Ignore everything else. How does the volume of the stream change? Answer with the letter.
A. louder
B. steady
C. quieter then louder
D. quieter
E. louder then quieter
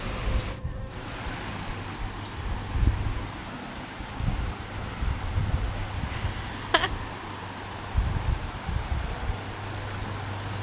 B.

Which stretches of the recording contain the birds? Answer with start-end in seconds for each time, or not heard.
not heard.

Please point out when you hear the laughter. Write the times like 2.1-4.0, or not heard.
6.0-6.9.